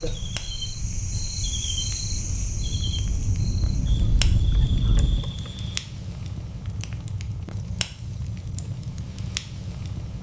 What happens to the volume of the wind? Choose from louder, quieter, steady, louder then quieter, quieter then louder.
louder.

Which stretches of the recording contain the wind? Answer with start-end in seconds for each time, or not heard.
0.0-5.3.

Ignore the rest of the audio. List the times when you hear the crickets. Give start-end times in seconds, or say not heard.
0.0-5.8.